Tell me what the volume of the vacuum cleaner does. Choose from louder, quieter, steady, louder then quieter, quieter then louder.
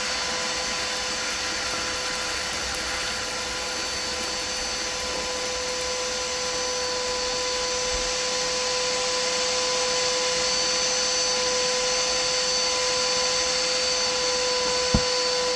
louder.